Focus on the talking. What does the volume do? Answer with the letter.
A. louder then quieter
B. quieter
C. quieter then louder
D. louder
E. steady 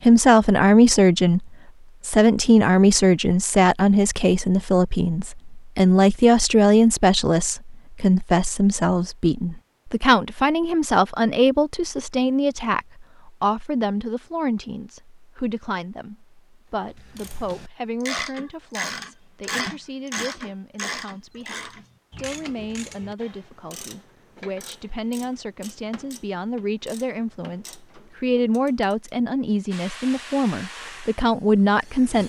C.